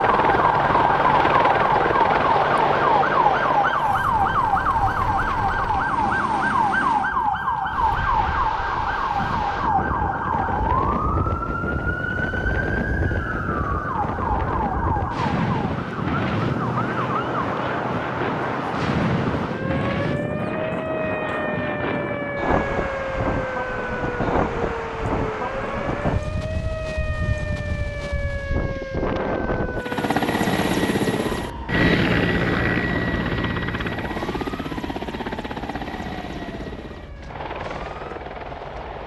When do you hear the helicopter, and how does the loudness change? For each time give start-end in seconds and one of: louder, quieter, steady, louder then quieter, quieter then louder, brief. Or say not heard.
0.0-7.2 quieter
29.7-39.0 quieter.